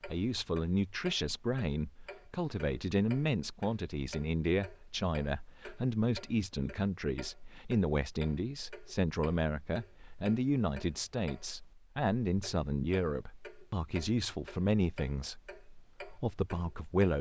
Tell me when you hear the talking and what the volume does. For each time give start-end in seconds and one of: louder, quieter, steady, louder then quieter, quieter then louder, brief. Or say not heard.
0.0-17.1 steady.